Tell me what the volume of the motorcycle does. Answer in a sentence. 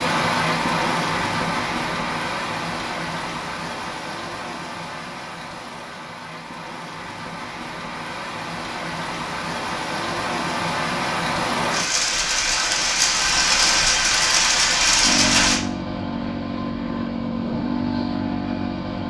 The volume of the motorcycle stays about the same.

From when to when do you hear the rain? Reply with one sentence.
The rain can be heard from 0.0 to 15.6 s.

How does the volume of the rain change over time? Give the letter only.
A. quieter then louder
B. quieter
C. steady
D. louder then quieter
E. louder
A.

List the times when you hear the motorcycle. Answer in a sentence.
The motorcycle can be heard from 15.0 to 19.0 s.